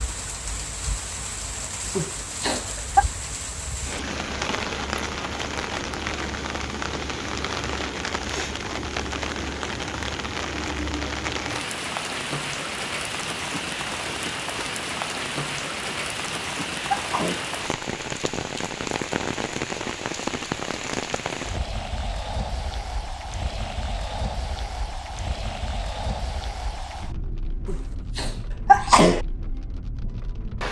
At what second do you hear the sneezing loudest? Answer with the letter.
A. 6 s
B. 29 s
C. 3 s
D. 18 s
B.